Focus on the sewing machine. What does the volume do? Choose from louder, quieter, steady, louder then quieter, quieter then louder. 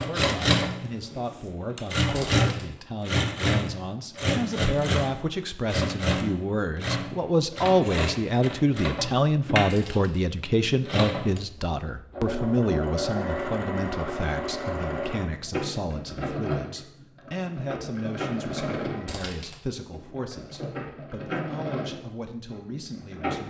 quieter.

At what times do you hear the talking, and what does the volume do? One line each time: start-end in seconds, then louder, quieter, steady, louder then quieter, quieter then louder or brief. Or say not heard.
0.0-23.4 louder then quieter.